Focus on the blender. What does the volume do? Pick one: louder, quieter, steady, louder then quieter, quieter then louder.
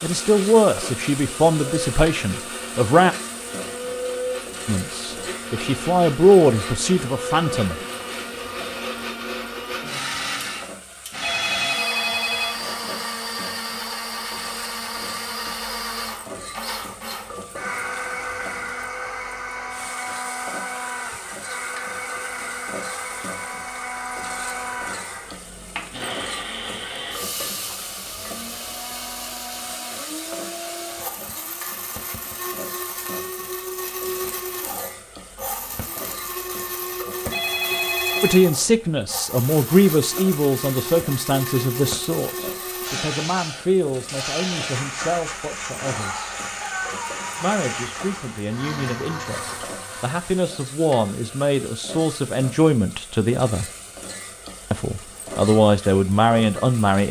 steady.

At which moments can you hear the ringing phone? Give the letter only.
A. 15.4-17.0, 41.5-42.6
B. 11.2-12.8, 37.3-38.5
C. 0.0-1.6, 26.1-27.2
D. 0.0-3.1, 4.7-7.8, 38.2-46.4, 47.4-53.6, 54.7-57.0
B.